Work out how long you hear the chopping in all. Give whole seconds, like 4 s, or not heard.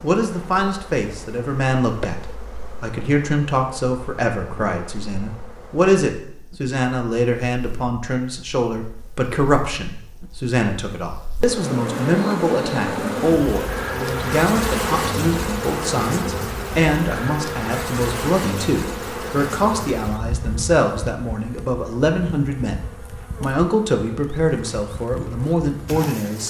not heard.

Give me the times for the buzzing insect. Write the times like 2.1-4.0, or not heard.
0.0-26.4.